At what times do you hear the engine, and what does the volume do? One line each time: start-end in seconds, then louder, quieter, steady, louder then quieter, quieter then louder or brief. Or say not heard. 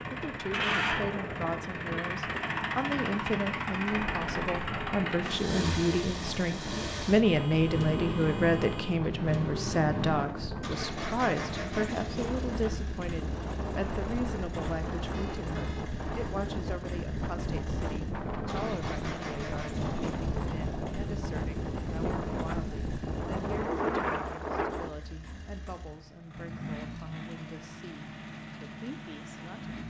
0.0-29.8 quieter.